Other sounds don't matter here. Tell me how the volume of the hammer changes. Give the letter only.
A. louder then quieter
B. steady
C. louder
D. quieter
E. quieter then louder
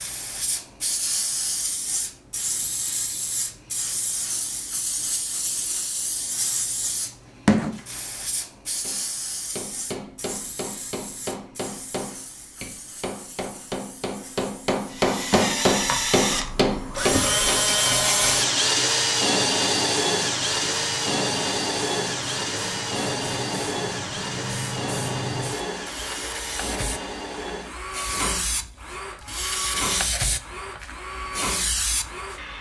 C.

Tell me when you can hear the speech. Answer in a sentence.
You can't hear the speech here.